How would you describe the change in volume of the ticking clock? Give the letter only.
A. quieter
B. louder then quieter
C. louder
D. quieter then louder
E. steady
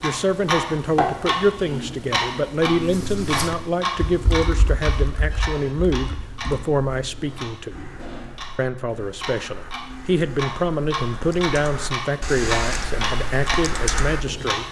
D.